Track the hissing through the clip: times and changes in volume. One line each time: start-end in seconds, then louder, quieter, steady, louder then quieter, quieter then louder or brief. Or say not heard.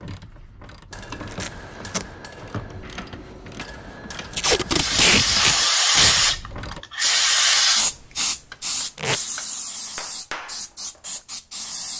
4.7-11.9 quieter.